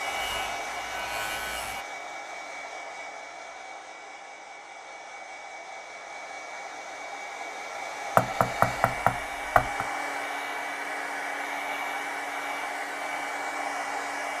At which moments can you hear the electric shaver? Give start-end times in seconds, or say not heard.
0.0-1.9.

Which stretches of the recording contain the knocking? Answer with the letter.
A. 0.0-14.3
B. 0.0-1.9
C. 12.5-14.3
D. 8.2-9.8
D.